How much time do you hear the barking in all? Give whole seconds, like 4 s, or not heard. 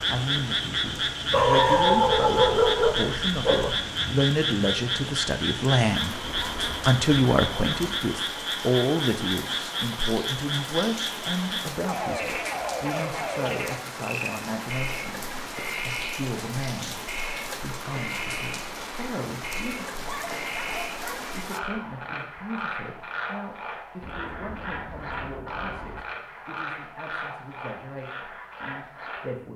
4 s.